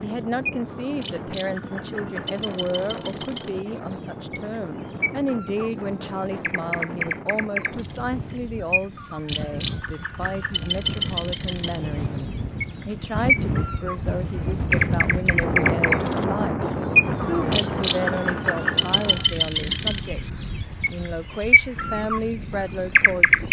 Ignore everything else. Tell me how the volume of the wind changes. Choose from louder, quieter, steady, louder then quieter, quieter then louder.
louder then quieter.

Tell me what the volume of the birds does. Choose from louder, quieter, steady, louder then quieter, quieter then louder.
louder.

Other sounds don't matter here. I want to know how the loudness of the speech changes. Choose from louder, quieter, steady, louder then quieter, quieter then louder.
steady.